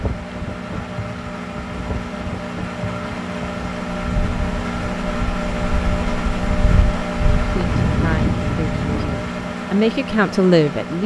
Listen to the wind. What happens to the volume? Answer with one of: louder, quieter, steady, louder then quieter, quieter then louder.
louder.